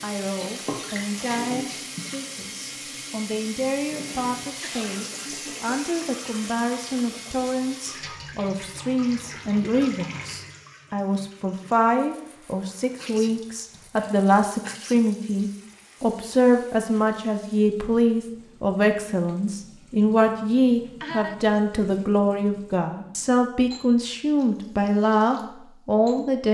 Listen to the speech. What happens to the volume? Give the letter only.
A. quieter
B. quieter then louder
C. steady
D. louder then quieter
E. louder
E.